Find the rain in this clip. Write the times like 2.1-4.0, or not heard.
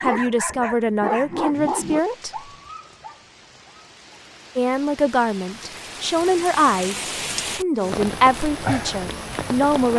1.5-9.9.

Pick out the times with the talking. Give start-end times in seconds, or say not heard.
0.0-2.4, 4.5-9.9.